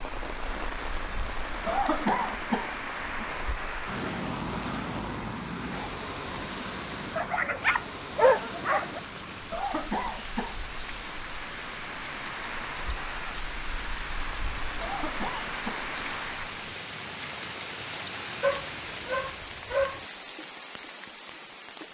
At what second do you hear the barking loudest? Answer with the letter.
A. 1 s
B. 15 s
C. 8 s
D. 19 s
C.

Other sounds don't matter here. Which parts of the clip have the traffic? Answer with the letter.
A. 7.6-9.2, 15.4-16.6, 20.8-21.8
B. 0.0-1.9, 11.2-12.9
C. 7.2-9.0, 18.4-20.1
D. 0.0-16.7
D.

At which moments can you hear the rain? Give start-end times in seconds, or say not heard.
0.0-21.8.